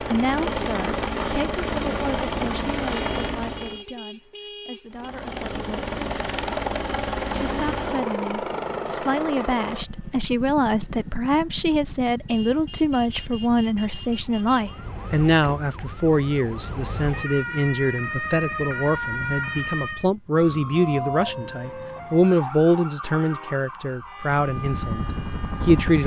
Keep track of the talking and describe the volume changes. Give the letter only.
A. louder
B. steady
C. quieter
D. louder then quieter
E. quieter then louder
A.